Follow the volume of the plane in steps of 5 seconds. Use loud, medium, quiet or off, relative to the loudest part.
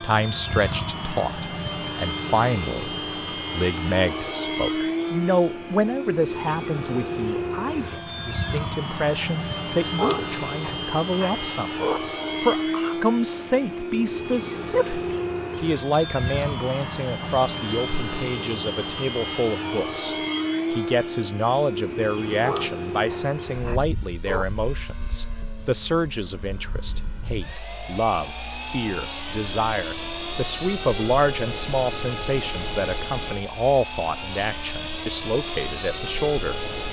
loud, loud, loud, loud, loud, medium, loud, loud.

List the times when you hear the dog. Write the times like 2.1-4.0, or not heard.
9.9-12.0, 22.4-24.4.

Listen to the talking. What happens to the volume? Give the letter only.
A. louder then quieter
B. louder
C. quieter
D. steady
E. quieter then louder
D.